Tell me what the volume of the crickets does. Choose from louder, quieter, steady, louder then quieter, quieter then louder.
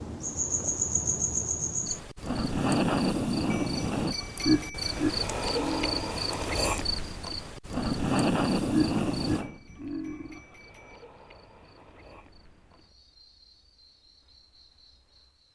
quieter.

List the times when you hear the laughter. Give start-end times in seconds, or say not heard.
4.5-6.2, 8.7-10.4.